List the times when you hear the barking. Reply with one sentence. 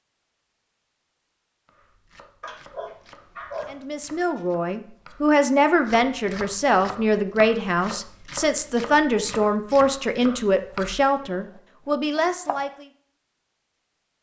You can hear the barking from 2.4 to 4.5 s.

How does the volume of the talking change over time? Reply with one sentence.
The volume of the talking stays about the same.